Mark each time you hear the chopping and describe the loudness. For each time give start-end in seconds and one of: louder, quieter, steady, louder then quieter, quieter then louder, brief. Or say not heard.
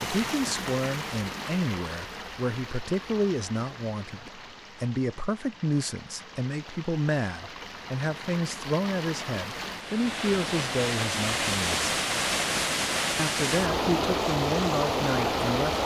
not heard.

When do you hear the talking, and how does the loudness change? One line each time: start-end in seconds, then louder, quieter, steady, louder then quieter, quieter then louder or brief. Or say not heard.
0.0-11.8 steady
13.2-15.8 brief.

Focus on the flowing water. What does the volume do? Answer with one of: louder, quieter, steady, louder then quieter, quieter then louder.
quieter then louder.